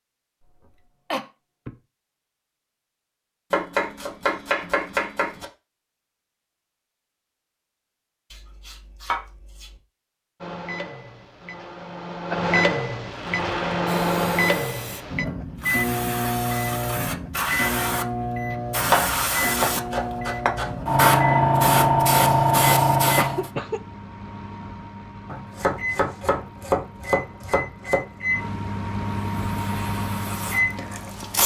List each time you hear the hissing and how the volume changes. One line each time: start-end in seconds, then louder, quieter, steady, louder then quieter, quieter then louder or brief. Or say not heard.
13.1-23.5 louder
29.2-31.4 brief.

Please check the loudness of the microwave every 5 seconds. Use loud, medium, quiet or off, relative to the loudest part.
off, off, loud, loud, medium, medium, loud.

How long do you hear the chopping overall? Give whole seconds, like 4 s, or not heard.
8 s.